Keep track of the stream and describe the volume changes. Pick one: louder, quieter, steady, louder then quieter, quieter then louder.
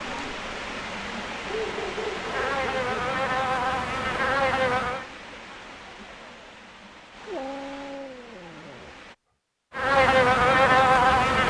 quieter.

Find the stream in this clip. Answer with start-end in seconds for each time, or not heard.
0.0-9.2.